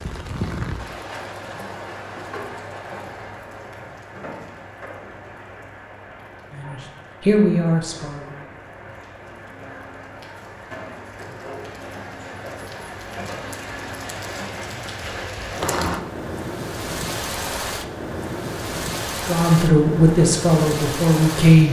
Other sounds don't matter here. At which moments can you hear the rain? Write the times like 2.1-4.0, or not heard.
0.0-21.6.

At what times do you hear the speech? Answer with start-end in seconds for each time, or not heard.
6.5-8.5, 19.2-21.6.